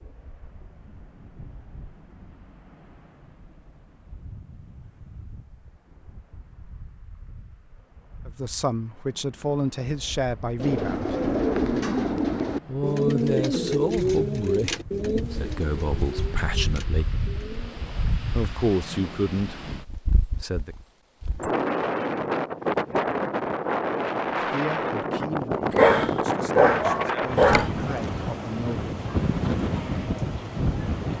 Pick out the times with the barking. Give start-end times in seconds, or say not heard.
25.7-27.7.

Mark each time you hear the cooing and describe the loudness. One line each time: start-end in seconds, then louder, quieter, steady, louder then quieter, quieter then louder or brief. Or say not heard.
10.6-17.9 quieter.